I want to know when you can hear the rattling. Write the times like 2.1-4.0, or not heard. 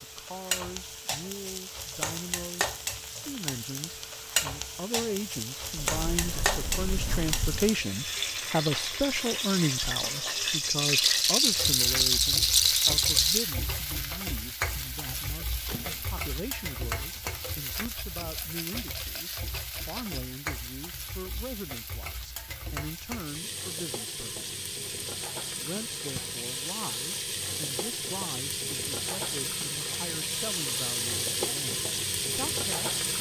10.8-13.5, 17.8-20.2.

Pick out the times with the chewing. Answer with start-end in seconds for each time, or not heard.
not heard.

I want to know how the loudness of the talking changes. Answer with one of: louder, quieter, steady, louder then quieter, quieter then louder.
louder then quieter.